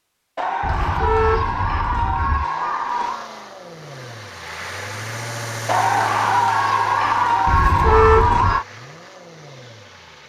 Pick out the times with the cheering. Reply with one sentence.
You can hear the cheering from 0.3 to 3.3 s and from 5.7 to 8.7 s.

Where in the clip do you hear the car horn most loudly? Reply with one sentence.
The loudest moment of the car horn is at 8 seconds.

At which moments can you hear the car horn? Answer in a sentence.
You can hear the car horn from 0.6 to 2.5 s and from 7.5 to 8.6 s.